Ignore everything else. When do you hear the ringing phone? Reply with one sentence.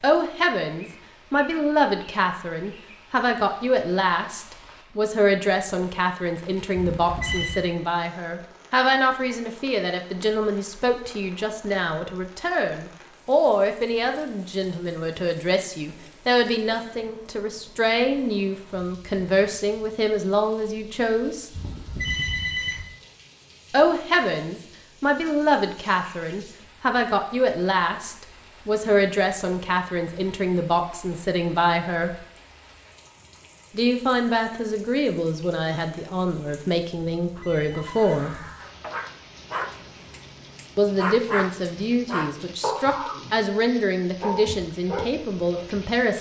The ringing phone can be heard from 6.8 to 7.7 s, from 21.5 to 22.9 s and from 37.2 to 38.8 s.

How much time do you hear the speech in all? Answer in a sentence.
You can hear the speech for 40 seconds altogether.